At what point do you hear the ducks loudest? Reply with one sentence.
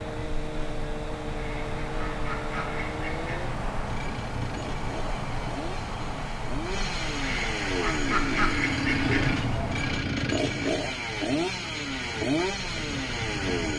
The volume of the ducks peaks at 8 seconds.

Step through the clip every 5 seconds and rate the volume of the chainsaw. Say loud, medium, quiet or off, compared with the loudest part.
medium, loud, loud.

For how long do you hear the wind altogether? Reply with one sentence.
You can hear the wind for 14 seconds altogether.